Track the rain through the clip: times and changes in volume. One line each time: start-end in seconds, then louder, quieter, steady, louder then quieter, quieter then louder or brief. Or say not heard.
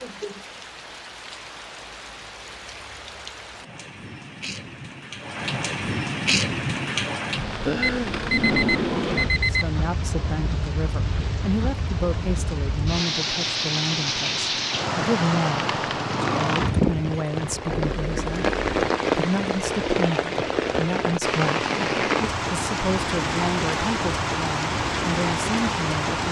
0.0-26.2 louder.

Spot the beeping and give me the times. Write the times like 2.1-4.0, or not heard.
7.8-9.7, 17.8-18.8.